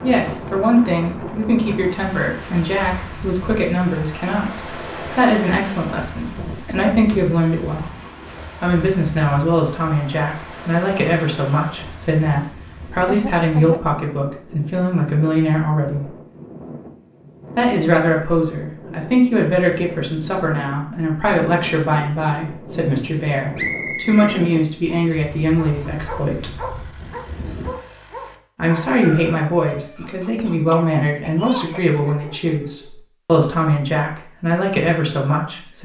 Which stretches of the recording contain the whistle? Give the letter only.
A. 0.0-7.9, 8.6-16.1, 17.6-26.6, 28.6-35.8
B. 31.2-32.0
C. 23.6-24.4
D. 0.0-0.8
C.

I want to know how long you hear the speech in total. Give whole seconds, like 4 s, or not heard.
32 s.